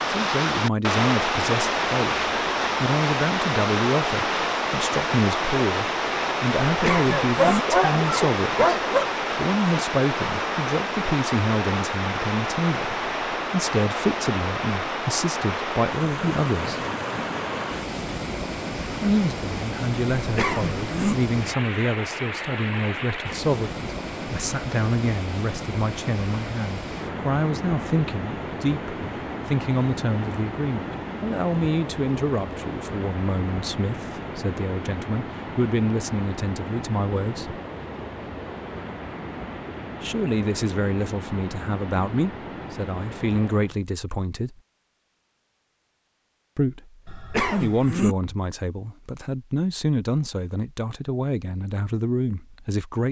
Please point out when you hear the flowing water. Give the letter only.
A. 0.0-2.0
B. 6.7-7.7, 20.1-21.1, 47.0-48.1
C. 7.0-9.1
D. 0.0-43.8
D.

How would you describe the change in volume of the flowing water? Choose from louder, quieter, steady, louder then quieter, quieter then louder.
quieter.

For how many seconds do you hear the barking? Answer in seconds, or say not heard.
2 s.